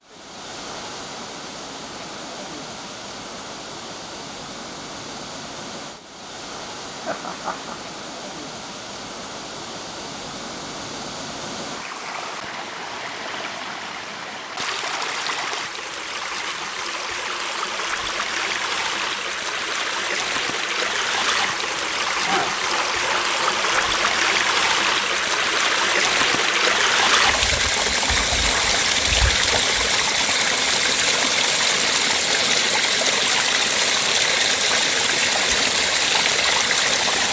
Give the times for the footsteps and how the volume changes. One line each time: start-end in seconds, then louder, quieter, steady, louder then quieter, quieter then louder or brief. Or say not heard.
not heard.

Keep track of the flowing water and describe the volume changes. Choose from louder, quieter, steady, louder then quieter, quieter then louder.
louder.